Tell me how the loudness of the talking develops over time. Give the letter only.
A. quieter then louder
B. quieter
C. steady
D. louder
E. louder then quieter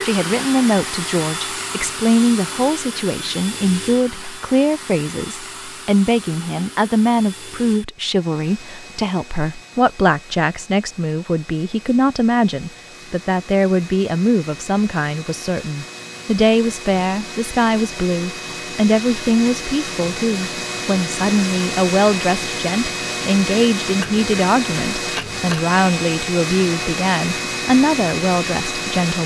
C.